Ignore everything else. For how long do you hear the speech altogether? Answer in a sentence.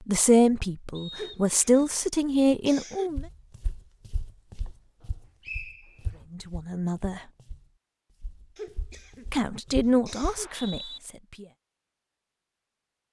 The speech can be heard for 6 seconds in total.